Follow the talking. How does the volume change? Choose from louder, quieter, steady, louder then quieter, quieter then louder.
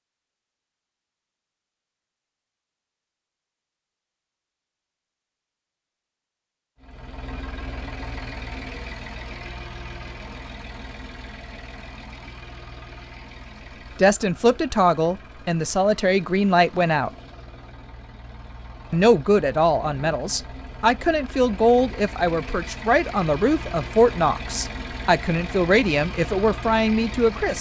steady.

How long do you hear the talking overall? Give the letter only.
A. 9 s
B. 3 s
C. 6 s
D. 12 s
D.